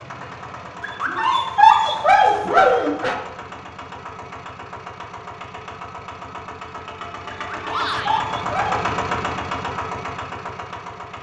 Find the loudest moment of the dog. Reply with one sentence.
The volume of the dog peaks at 2 seconds.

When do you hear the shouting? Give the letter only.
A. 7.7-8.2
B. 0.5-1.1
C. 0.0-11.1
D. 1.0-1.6
A.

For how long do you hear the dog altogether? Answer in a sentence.
You can hear the dog for 4 seconds altogether.